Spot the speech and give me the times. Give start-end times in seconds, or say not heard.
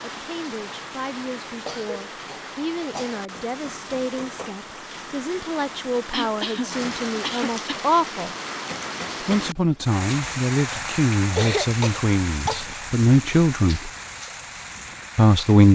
0.0-8.3, 9.2-13.9, 15.2-15.7.